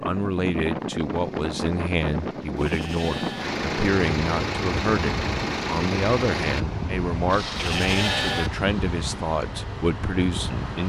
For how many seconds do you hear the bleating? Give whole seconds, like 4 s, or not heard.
2 s.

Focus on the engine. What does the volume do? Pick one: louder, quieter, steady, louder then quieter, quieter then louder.
louder then quieter.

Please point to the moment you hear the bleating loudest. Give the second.
8 s.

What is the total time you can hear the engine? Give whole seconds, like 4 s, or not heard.
11 s.